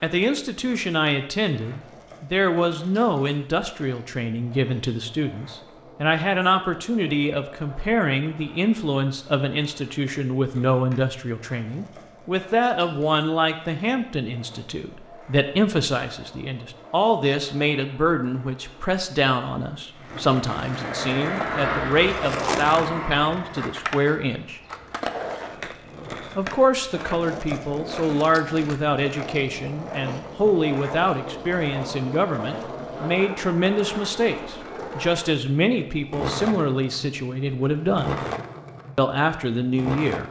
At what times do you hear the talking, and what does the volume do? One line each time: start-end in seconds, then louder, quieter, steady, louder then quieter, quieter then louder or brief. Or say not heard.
0.0-24.6 steady
26.4-38.2 steady
39.0-40.2 brief.